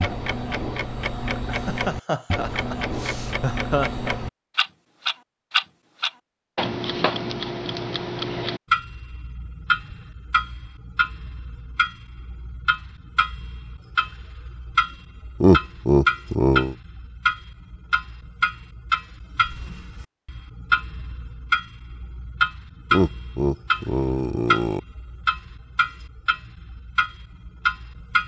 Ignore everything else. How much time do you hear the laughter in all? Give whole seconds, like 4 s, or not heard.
6 s.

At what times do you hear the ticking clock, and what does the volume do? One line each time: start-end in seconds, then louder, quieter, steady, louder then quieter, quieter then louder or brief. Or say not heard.
0.0-28.2 steady.